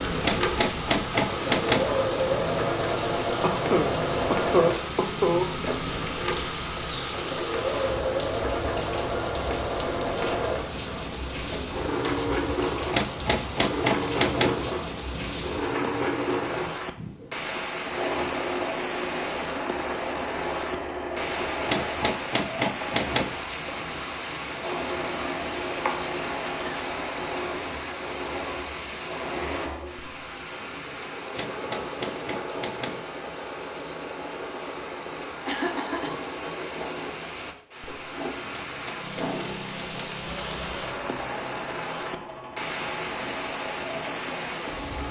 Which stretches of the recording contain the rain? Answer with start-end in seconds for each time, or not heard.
0.0-45.0.